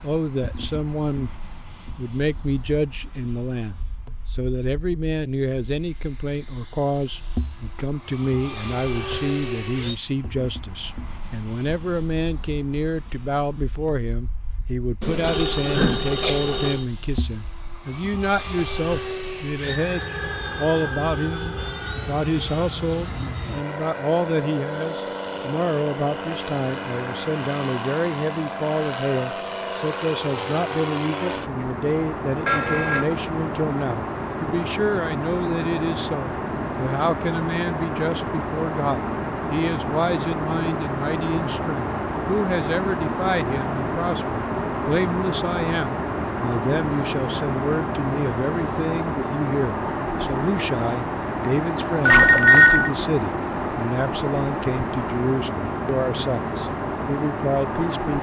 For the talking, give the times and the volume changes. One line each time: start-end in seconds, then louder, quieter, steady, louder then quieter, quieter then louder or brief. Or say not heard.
0.0-1.3 brief
1.9-58.1 steady.